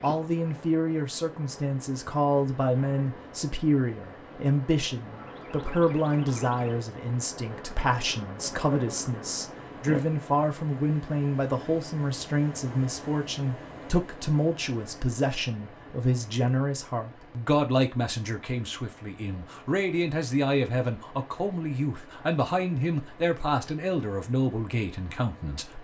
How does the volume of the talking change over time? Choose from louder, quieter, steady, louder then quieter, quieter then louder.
steady.